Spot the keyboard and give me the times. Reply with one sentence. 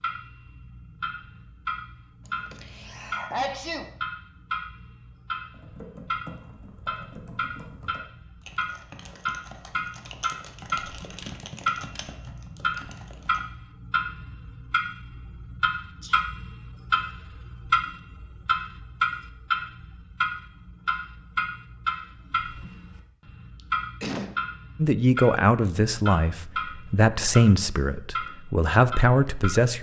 You can hear the keyboard from 5.5 to 13.4 s.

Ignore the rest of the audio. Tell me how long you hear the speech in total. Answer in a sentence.
The speech can be heard for 5 seconds in total.